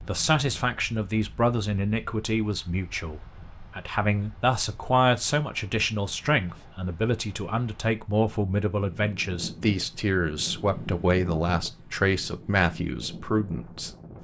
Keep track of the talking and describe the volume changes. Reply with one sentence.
The loudness of the talking stays about the same.